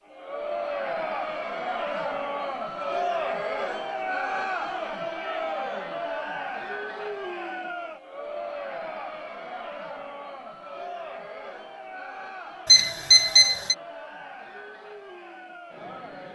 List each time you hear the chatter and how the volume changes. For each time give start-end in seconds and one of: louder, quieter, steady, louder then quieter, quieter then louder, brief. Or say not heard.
0.1-16.2 quieter.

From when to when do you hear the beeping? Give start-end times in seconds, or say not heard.
12.7-13.8.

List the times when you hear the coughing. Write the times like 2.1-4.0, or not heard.
not heard.